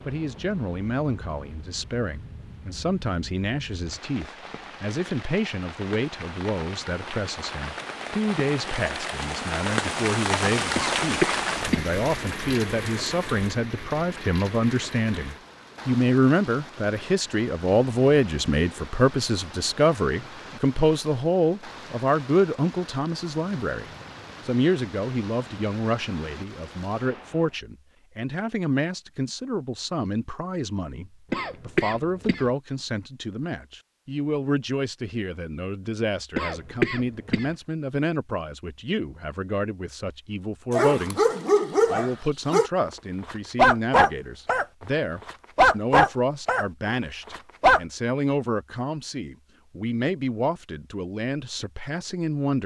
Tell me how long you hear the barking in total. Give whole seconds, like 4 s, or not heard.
5 s.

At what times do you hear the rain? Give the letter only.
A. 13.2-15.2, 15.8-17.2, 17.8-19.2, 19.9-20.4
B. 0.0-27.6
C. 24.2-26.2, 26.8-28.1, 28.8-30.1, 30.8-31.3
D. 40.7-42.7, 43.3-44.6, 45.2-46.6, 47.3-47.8
B.